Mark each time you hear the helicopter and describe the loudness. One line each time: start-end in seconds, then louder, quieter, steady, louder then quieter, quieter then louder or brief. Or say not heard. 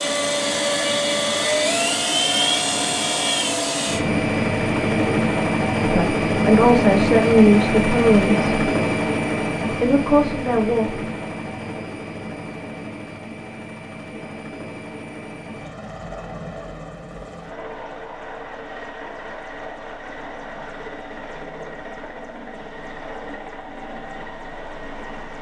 0.0-25.3 quieter.